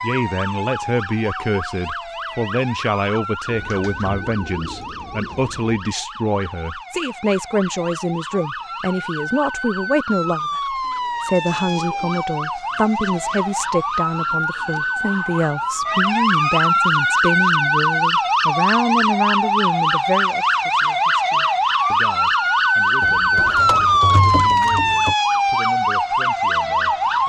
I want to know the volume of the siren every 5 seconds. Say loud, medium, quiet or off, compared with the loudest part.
quiet, quiet, medium, loud, loud, loud.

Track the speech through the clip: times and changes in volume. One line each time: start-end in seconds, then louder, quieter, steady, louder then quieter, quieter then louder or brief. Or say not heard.
0.0-27.2 quieter.